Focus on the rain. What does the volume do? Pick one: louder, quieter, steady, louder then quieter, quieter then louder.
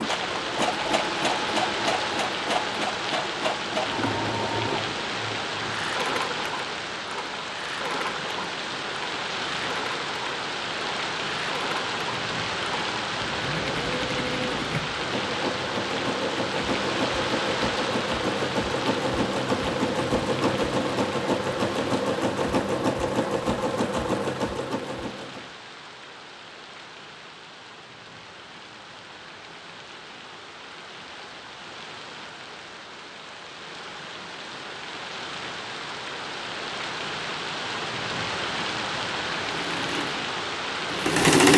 quieter then louder.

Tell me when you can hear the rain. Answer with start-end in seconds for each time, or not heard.
0.0-41.4.